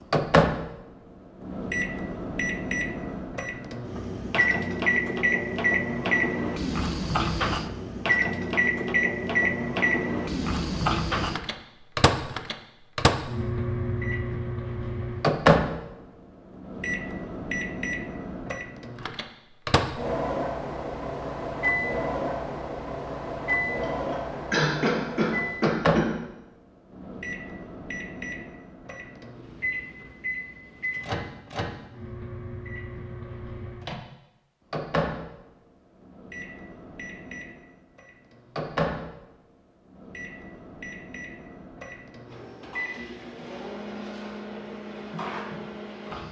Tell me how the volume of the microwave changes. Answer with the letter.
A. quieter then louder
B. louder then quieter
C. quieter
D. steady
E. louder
C.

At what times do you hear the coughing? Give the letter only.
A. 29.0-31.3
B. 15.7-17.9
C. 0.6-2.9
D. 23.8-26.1
D.